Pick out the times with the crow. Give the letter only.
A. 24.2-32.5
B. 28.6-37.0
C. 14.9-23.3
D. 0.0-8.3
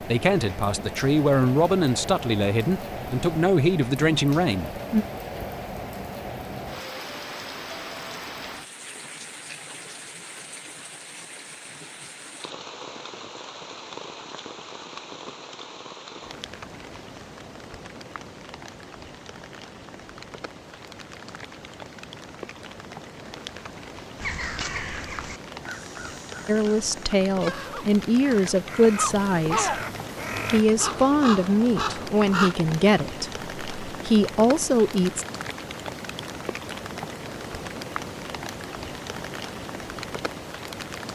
A.